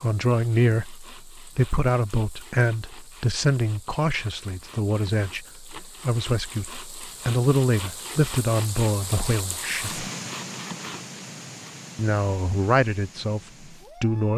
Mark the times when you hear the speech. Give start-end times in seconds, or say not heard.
0.0-10.1, 11.9-14.3.